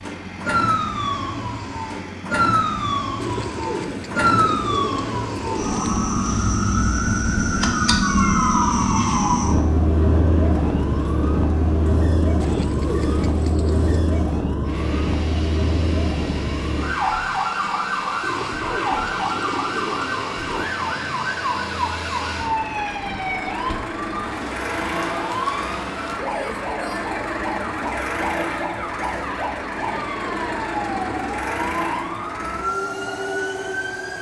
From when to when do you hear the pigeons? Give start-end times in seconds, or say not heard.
3.2-6.0, 12.3-14.0, 18.2-20.8, 29.8-31.3.